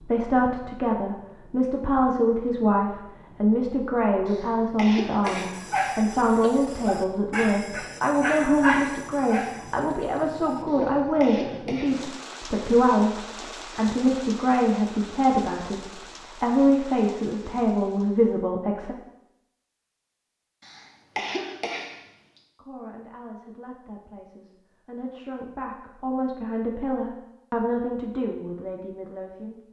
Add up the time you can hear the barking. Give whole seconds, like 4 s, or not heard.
7 s.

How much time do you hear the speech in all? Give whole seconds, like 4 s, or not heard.
26 s.